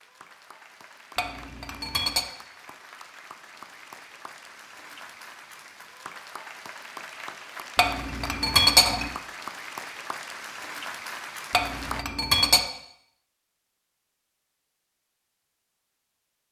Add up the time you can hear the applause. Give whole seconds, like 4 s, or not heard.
12 s.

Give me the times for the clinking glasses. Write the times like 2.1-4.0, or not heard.
1.1-2.3, 7.8-9.1, 11.5-12.6.